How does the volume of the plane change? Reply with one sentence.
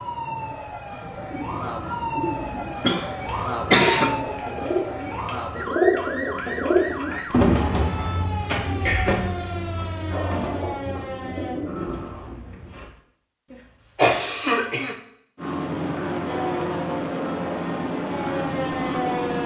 The volume of the plane stays about the same.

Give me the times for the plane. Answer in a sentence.
You can hear the plane from 15.3 to 19.4 s.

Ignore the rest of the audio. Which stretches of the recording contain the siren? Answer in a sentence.
You can hear the siren from 0.0 to 11.6 s and from 16.2 to 19.4 s.